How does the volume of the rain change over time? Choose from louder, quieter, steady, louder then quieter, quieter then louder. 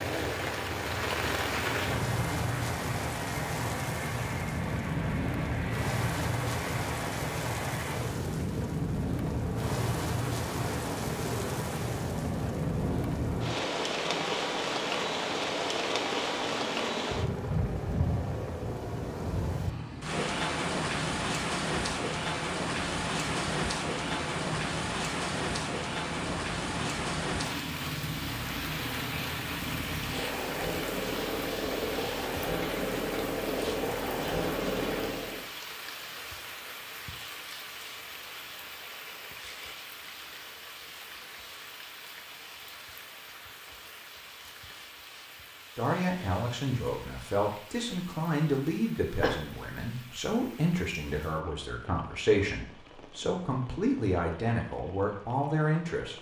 quieter.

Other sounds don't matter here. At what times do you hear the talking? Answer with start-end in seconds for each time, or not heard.
45.8-56.1.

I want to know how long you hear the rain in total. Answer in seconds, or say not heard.
56 s.